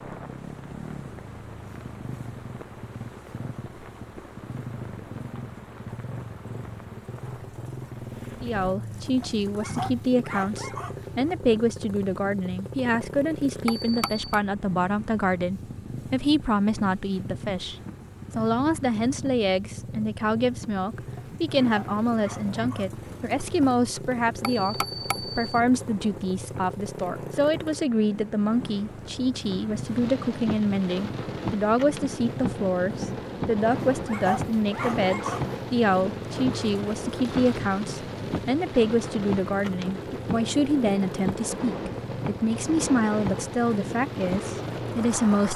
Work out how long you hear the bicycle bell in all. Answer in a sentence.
The bicycle bell can be heard for 2 seconds in total.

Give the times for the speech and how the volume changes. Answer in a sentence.
The speech can be heard from 8.4 to 45.5 s, at a steady volume.